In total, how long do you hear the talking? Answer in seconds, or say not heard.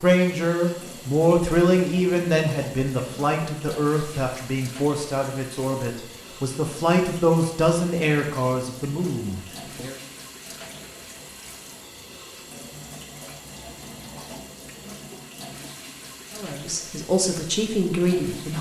12 s.